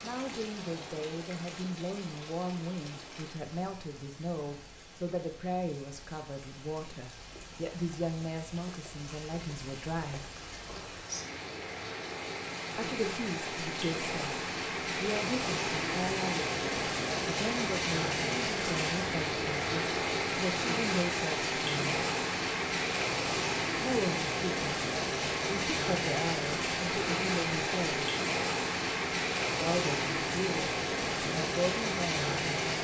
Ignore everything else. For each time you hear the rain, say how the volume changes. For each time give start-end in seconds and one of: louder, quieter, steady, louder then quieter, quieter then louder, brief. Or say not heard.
0.0-32.7 louder.